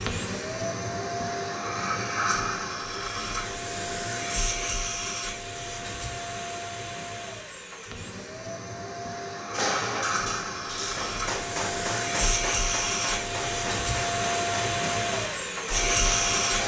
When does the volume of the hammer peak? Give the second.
10 s.